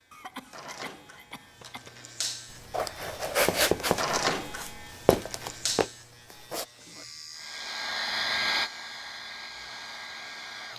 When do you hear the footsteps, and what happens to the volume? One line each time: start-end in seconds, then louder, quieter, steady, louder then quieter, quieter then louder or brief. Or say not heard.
2.5-6.7 quieter then louder.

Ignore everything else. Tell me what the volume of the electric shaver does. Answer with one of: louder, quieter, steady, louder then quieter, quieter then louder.
louder then quieter.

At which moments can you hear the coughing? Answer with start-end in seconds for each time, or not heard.
0.1-2.0.